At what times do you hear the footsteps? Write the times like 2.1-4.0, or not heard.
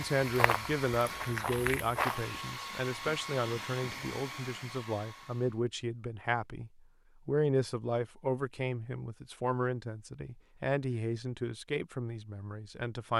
0.2-2.5.